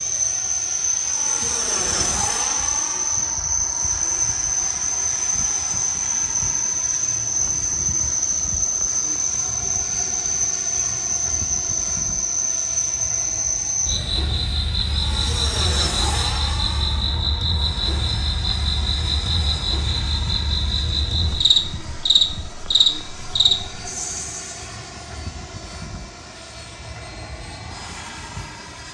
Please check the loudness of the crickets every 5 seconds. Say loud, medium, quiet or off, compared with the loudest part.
loud, loud, loud, loud, loud, off.